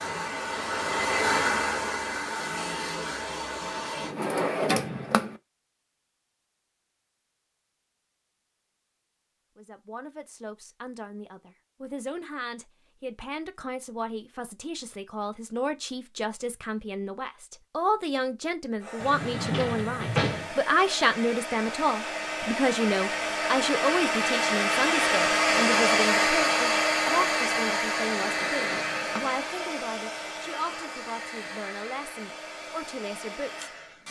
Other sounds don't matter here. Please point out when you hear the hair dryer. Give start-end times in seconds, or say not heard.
0.0-4.2, 18.8-34.0.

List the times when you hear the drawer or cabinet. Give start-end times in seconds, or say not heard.
4.0-5.3, 19.0-20.6, 28.1-29.3.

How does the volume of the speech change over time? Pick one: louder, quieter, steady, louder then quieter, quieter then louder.
louder then quieter.